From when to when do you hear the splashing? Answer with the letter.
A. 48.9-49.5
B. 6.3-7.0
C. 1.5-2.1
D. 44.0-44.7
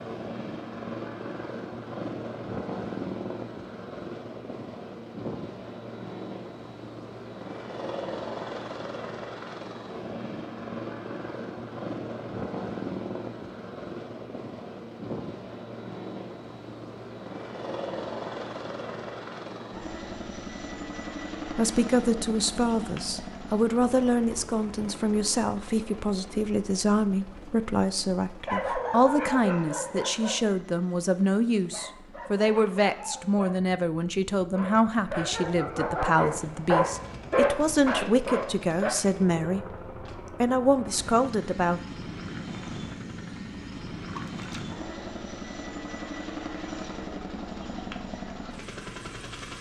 D.